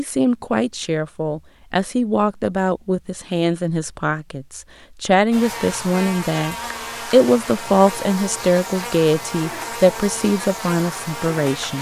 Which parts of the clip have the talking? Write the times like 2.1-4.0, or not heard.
0.0-11.7.